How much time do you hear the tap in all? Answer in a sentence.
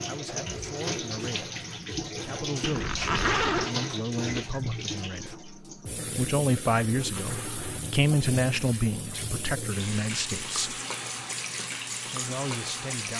You can hear the tap for 13 seconds altogether.